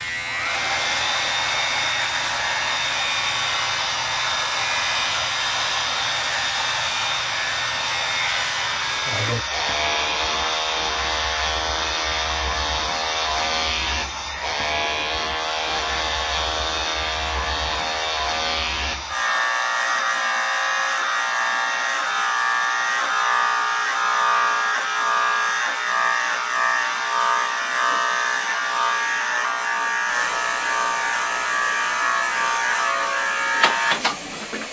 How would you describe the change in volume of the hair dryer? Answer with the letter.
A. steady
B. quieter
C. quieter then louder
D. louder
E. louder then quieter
B.